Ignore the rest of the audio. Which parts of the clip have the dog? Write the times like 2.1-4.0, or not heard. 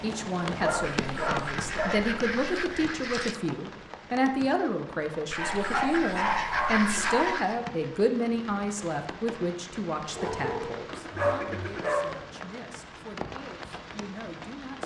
0.6-2.1, 5.3-7.3, 10.2-12.2.